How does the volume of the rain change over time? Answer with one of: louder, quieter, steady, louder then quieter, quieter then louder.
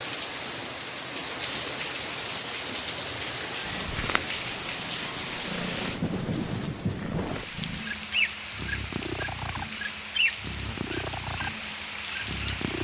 steady.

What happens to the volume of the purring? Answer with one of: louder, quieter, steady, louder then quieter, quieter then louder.
steady.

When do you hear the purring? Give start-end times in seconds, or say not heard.
3.6-12.7.